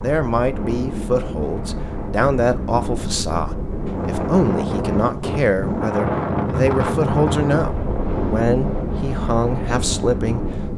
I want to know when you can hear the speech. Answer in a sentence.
The speech can be heard from 0.0 to 10.6 s.